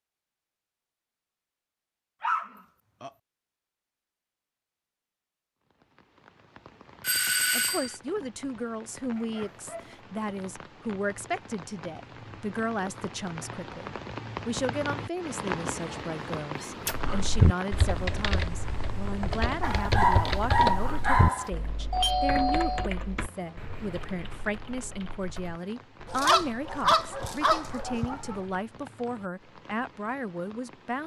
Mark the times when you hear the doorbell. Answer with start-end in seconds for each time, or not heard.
7.0-8.0, 21.9-22.9.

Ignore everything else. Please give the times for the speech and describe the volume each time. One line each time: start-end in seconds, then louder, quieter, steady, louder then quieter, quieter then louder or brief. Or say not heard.
7.5-31.0 steady.